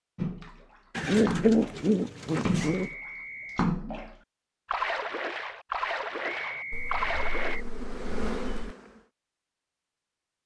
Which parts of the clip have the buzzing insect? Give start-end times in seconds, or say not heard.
7.0-9.1.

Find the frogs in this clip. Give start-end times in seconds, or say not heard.
not heard.